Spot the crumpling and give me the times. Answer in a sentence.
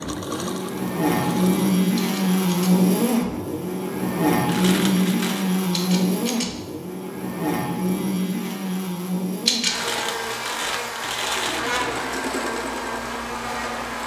You can hear the crumpling from 4.5 to 5.5 s and from 9.7 to 11.8 s.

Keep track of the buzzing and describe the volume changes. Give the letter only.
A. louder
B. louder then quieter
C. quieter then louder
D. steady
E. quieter
E.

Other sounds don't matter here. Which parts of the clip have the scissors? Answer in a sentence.
You can hear the scissors from 1.9 to 2.8 s, from 5.7 to 6.5 s and from 9.4 to 10.1 s.